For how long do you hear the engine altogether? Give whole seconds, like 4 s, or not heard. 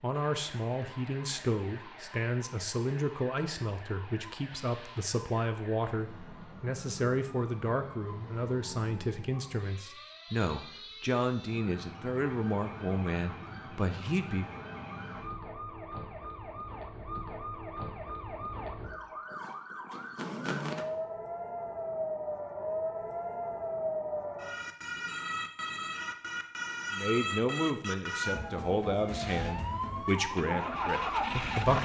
3 s.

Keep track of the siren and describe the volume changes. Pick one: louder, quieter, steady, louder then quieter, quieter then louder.
louder.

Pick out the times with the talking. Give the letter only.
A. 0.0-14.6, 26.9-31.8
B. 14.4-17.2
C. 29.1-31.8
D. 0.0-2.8
A.